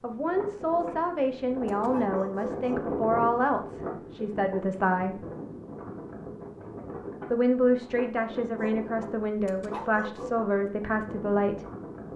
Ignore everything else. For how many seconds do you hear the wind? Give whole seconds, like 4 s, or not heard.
12 s.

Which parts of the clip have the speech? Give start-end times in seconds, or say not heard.
0.0-5.2, 7.3-11.7.